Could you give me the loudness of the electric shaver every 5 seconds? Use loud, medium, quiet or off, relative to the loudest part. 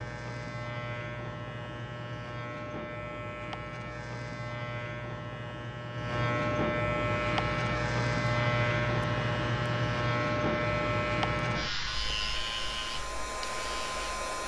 medium, loud, loud.